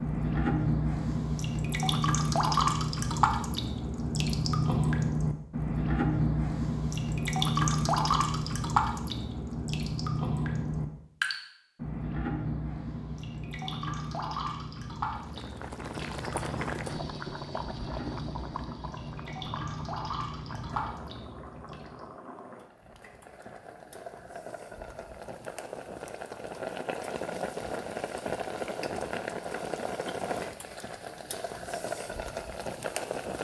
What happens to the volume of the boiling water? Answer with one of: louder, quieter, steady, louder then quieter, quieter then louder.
quieter then louder.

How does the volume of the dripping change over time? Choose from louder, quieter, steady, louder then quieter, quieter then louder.
quieter.